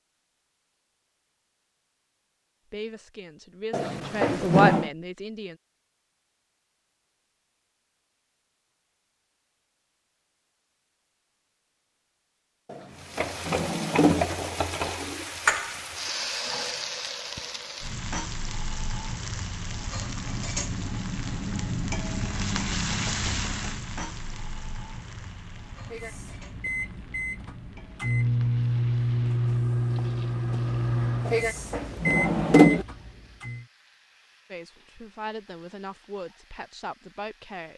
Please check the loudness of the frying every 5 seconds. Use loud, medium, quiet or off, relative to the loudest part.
off, off, loud, loud, loud, quiet, quiet, quiet.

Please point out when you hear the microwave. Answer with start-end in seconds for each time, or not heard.
25.7-33.6.